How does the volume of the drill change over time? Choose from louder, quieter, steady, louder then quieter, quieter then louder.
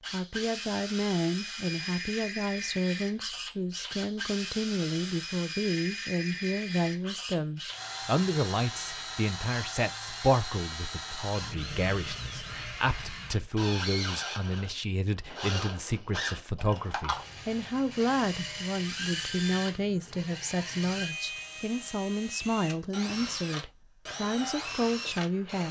steady.